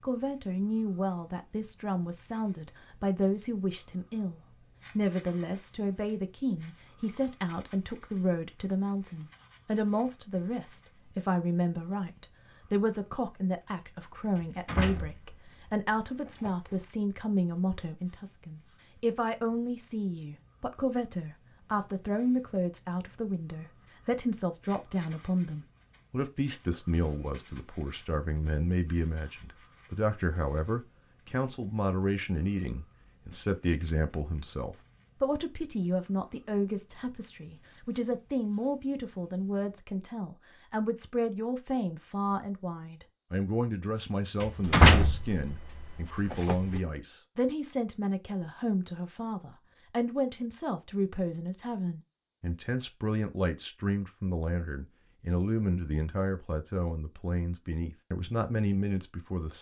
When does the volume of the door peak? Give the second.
45 s.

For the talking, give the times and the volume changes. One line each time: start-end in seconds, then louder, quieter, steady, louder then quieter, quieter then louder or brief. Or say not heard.
0.0-59.5 steady.